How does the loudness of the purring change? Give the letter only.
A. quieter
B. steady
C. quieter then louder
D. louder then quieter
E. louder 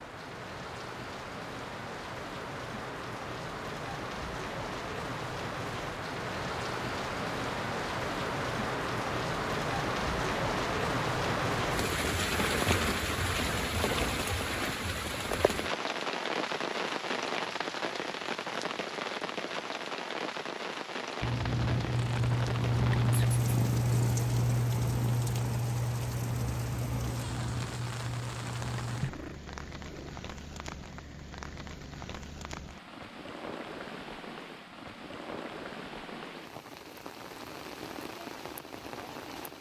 A.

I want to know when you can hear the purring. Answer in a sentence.
The purring can be heard from 21.2 to 30.1 s.